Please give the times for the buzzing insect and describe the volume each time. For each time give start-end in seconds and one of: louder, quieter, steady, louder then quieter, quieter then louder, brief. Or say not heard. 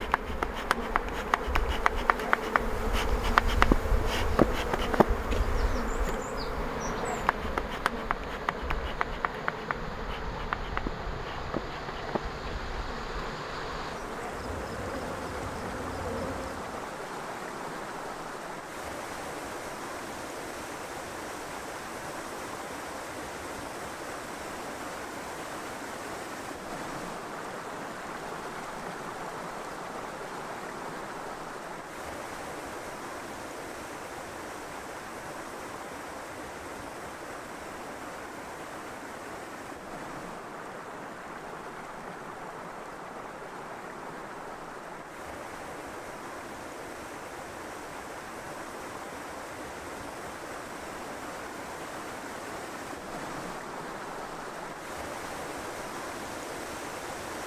0.0-16.8 quieter.